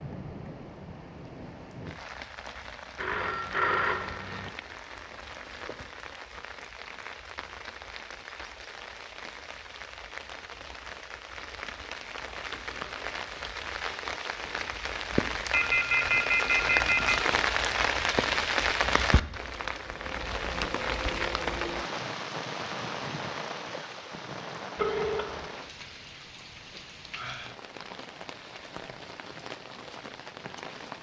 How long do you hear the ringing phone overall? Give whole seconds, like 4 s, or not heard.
4 s.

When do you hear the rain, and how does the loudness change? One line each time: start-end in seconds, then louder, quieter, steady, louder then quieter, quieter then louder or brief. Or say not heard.
0.0-30.9 louder then quieter.